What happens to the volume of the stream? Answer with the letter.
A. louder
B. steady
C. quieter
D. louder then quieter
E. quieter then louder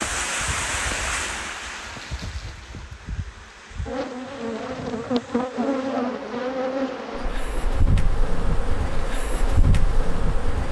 C.